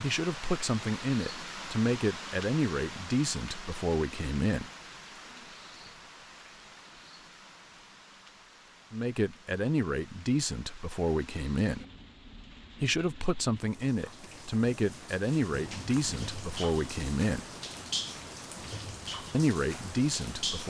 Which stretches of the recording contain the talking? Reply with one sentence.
The talking can be heard from 0.0 to 4.7 s, from 8.9 to 11.8 s, from 12.8 to 17.4 s and from 19.3 to 20.6 s.